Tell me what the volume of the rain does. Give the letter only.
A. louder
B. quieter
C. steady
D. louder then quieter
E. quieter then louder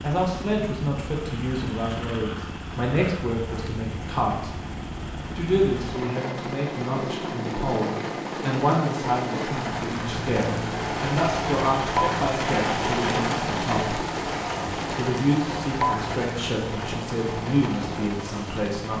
D.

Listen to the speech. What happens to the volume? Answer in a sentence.
The loudness of the speech stays about the same.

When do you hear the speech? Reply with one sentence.
You can hear the speech from 0.0 to 4.5 s and from 5.3 to 18.9 s.